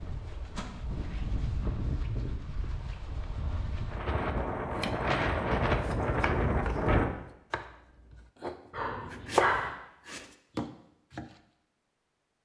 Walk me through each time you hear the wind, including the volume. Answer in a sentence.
You can hear the wind from 0.0 to 7.1 s, getting louder.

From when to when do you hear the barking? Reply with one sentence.
The barking can be heard from 8.7 to 9.7 s.